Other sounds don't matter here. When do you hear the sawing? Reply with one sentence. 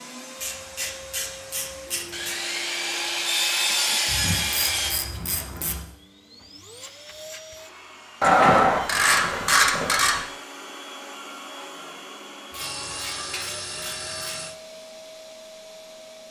You can hear the sawing from 2.1 to 5.0 s and from 12.6 to 14.6 s.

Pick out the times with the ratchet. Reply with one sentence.
The ratchet can be heard from 0.4 to 2.4 s, from 4.0 to 5.8 s, from 8.2 to 10.2 s and from 12.5 to 14.4 s.